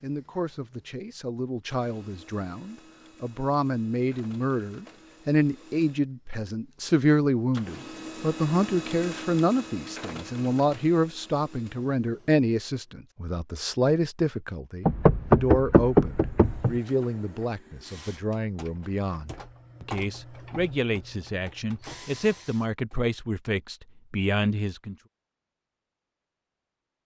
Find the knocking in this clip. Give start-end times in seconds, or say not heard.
14.8-16.8.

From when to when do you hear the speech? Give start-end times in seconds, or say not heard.
0.0-24.9.